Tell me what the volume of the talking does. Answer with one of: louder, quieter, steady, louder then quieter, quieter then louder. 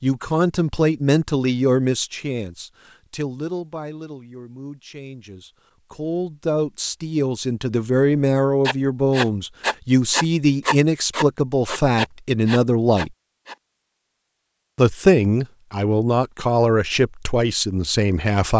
quieter then louder.